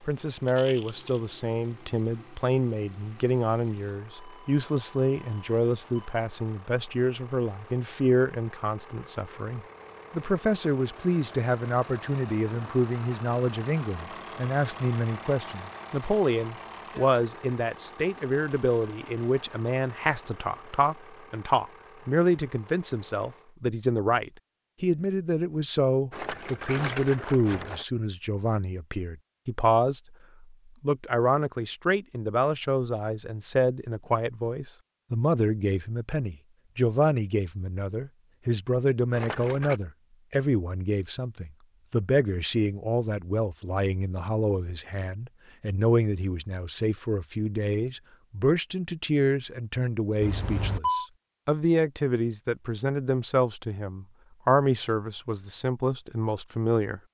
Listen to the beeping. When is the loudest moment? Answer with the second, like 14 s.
51 s.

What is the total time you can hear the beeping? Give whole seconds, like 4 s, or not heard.
3 s.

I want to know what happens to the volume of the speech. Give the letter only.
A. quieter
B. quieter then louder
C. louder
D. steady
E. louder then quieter
D.